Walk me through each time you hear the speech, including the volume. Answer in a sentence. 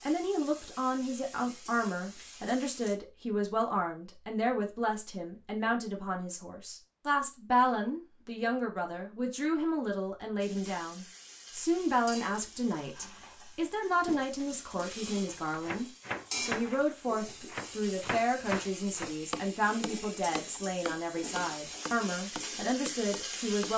The speech can be heard from 0.0 to 23.7 s, at a steady volume.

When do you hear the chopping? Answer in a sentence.
You can hear the chopping from 15.2 to 23.7 s.